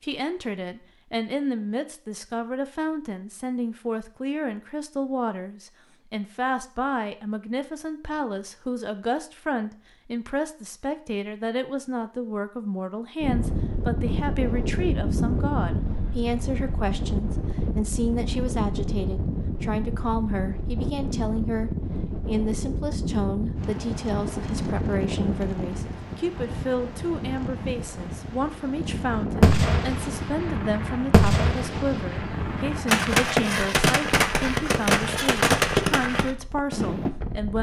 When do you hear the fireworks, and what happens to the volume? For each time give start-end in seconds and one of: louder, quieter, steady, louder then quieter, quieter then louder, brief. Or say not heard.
29.4-37.1 louder.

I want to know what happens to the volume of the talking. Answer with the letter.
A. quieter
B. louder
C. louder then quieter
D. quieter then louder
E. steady
E.